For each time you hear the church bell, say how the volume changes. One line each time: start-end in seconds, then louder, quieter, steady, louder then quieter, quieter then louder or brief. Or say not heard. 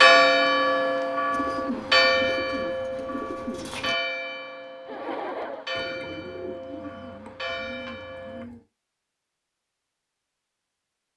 0.0-8.4 quieter.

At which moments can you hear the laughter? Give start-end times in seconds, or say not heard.
4.8-5.7.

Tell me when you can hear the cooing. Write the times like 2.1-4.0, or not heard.
1.3-4.0, 5.7-8.7.